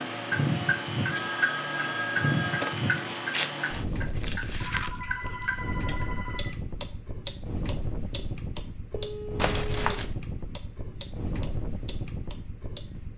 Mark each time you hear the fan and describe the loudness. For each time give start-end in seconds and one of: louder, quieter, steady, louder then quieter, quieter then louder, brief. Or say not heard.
0.0-13.1 quieter.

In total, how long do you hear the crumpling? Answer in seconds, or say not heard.
3 s.